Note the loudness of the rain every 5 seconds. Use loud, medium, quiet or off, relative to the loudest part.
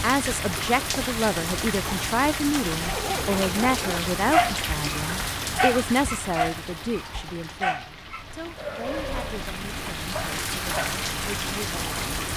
loud, medium, loud.